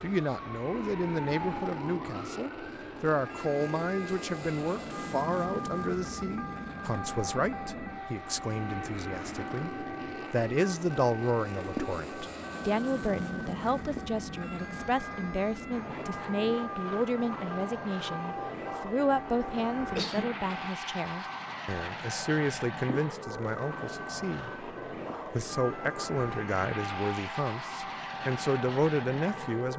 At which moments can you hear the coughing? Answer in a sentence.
The coughing can be heard from 19.8 to 20.4 s.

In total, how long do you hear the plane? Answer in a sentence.
The plane can be heard for 30 seconds in total.